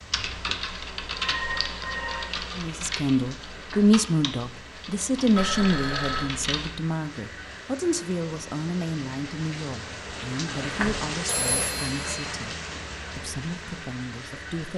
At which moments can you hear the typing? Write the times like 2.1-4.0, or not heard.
0.1-6.7.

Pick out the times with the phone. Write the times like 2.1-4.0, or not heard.
1.1-2.5, 5.3-6.2, 11.2-12.2.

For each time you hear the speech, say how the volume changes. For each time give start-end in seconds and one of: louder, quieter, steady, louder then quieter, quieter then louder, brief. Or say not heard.
2.5-12.6 quieter
13.2-14.7 brief.